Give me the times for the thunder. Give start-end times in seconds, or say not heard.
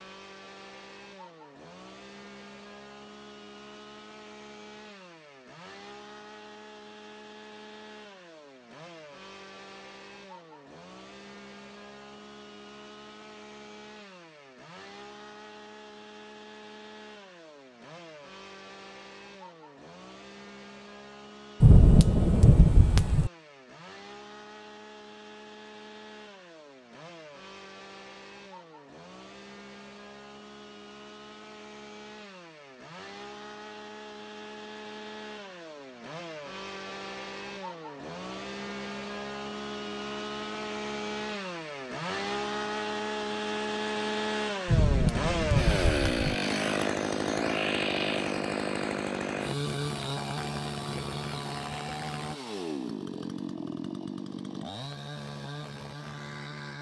21.6-23.3, 44.6-46.4.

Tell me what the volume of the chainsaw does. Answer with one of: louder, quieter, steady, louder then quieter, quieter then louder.
louder.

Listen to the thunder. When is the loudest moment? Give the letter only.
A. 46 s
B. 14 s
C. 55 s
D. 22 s
D.